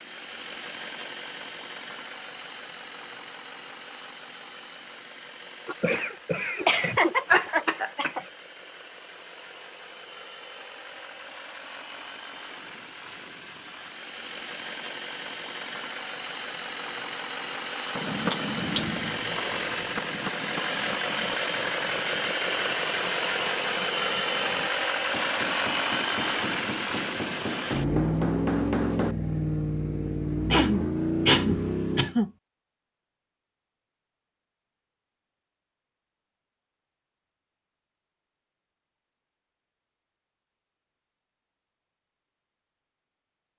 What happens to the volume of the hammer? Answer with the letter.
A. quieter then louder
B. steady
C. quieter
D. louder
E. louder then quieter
A.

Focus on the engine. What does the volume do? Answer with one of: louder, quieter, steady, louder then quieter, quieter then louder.
louder.